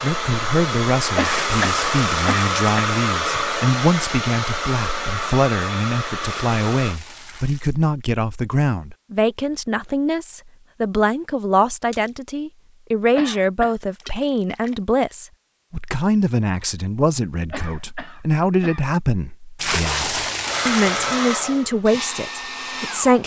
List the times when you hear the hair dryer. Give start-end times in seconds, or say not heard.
0.0-7.0, 20.4-23.2.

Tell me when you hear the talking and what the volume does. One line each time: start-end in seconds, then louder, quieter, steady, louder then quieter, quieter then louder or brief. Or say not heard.
0.0-23.2 steady.